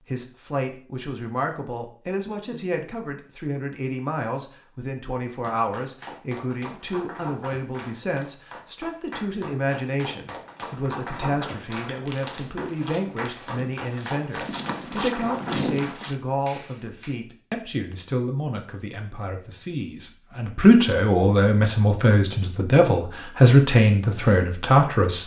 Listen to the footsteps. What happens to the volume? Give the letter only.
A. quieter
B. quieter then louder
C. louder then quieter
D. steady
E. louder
E.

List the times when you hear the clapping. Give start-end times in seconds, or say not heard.
5.3-17.1.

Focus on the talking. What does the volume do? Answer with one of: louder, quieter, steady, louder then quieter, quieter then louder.
louder.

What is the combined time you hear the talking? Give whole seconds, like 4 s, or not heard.
25 s.